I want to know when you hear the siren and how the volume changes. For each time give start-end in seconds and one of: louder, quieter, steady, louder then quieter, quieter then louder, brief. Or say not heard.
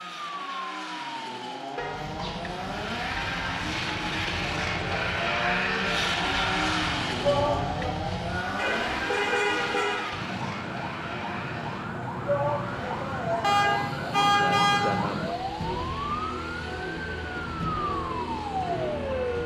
0.0-19.4 louder.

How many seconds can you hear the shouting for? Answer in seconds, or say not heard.
2 s.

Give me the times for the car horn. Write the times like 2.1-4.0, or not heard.
1.8-2.4, 8.6-10.1, 13.4-14.8.